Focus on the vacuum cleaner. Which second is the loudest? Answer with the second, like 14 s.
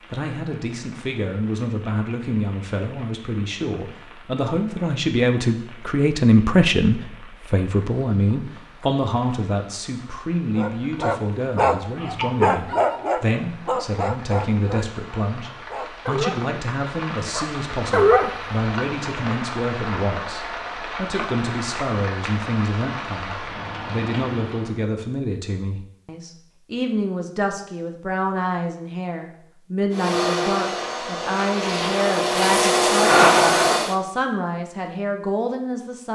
33 s.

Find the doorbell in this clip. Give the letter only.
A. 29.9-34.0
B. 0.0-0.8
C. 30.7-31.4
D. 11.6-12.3
D.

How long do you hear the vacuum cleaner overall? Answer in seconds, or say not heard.
4 s.